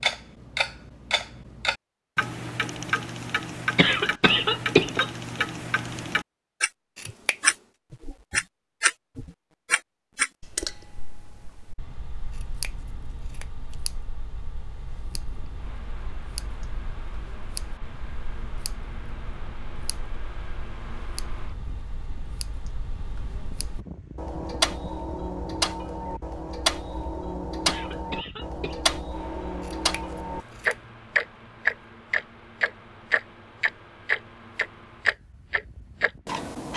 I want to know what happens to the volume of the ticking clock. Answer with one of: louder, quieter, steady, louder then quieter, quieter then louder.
quieter then louder.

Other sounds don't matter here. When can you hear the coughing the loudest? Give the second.
5 s.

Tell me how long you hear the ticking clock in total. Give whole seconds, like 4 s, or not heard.
37 s.